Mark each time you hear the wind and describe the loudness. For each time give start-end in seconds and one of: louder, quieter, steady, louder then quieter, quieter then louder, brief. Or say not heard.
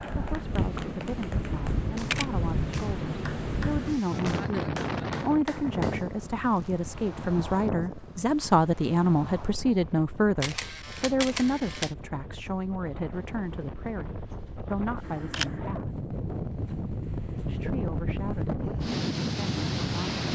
0.0-20.3 quieter then louder.